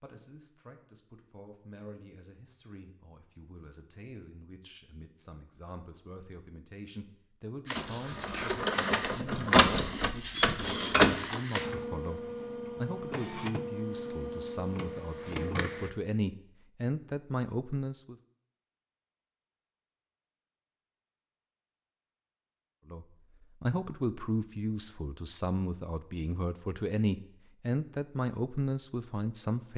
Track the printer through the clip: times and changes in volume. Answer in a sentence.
You can hear the printer from 7.7 to 15.9 s, getting louder then quieter.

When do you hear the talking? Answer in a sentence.
You can hear the talking from 0.0 to 18.1 s and from 22.9 to 29.7 s.